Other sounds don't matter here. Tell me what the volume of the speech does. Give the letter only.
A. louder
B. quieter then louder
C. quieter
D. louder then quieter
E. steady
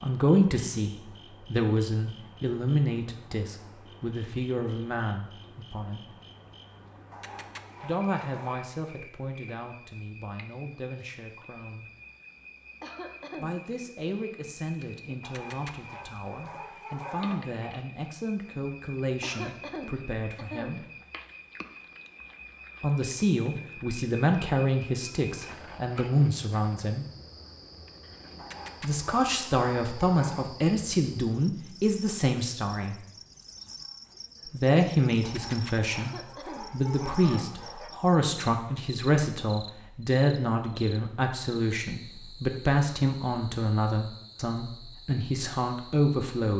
B.